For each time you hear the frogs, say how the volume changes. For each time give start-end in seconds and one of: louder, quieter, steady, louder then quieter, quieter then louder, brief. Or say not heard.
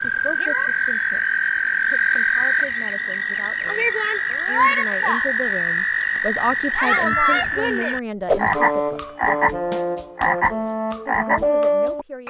0.0-12.2 steady.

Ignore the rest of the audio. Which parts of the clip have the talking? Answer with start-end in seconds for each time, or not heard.
0.0-9.2, 11.1-12.2.